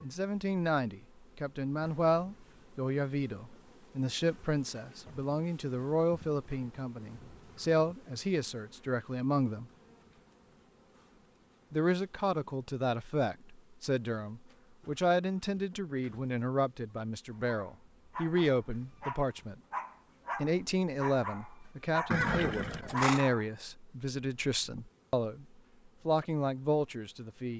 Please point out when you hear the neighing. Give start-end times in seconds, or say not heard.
22.1-23.2.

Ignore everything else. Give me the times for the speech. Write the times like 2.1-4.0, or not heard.
0.0-9.7, 11.7-19.6, 20.4-25.4, 26.1-27.5.